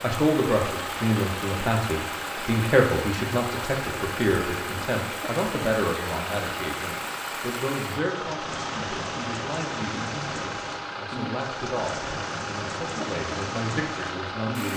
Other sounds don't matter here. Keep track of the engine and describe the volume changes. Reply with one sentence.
The loudness of the engine stays about the same.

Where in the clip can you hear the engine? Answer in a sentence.
You can hear the engine from 0.0 to 14.7 s.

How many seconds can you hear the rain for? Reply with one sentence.
The rain can be heard for 15 seconds in total.